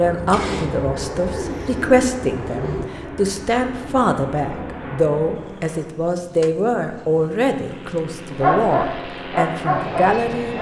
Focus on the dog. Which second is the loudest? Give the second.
9 s.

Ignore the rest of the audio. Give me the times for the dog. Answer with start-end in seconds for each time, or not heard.
8.2-10.5.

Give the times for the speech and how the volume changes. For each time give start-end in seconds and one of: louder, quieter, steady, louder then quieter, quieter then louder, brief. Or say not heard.
0.0-10.5 steady.